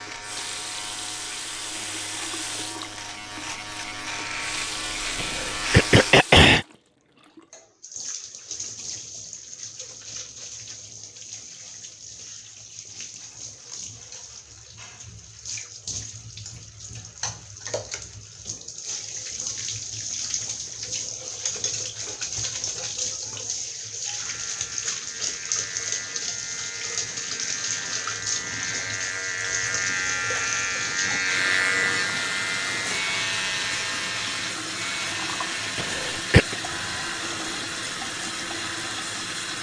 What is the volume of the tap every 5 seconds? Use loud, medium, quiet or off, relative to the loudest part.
medium, medium, medium, medium, loud, loud, loud, loud.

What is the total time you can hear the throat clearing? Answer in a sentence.
The throat clearing can be heard for 2 seconds in total.